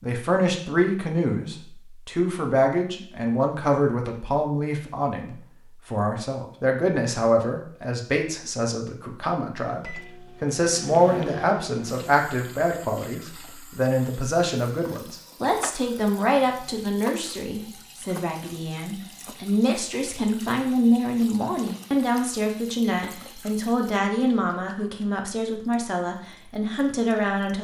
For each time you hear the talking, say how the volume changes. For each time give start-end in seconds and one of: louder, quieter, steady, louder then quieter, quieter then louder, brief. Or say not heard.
0.0-27.5 steady.